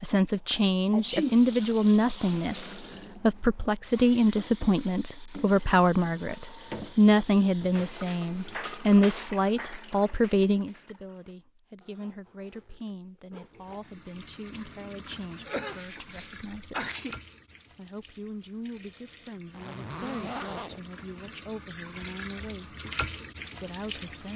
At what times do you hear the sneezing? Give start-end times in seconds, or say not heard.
0.9-1.4, 15.4-17.2.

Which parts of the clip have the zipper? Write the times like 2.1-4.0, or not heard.
2.4-2.9, 11.8-13.8, 19.5-20.8.